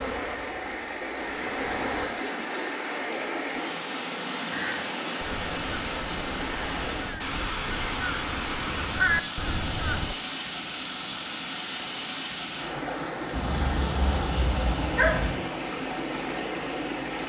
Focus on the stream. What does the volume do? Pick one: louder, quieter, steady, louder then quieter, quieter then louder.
steady.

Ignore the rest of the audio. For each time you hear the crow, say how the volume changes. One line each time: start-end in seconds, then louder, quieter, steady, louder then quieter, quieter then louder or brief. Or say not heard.
4.5-10.2 louder.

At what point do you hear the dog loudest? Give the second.
15 s.